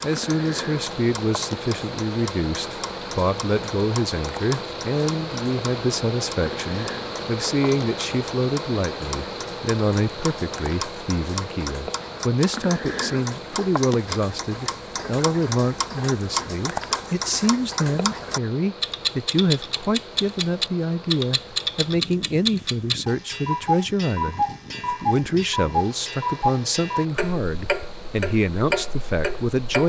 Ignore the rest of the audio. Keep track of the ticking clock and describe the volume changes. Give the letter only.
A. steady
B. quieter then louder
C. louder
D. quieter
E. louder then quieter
C.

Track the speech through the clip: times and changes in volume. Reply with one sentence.
You can hear the speech from 0.0 to 29.8 s, at a steady volume.